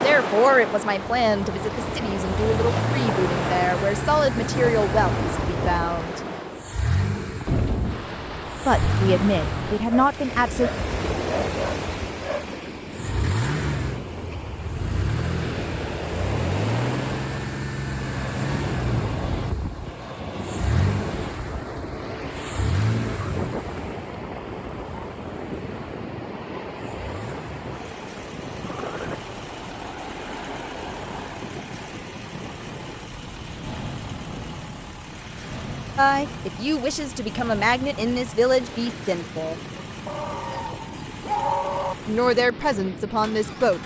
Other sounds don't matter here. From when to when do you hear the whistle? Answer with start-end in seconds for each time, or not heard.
not heard.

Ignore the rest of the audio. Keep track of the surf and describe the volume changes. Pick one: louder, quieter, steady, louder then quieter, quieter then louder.
quieter.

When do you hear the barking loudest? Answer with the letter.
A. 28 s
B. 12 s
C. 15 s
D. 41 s
D.